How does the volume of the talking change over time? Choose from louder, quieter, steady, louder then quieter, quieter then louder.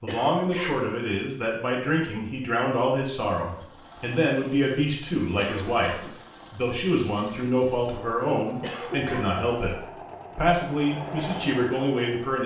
steady.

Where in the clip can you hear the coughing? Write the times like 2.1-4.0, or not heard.
0.1-0.8, 5.3-6.2, 8.6-9.4.